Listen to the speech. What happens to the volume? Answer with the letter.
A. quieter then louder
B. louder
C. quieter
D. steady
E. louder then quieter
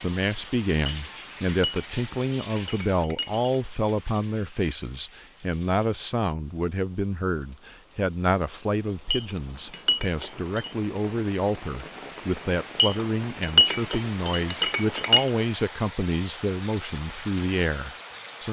D.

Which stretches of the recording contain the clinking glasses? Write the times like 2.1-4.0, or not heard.
0.8-3.5, 9.1-10.7, 12.8-15.3.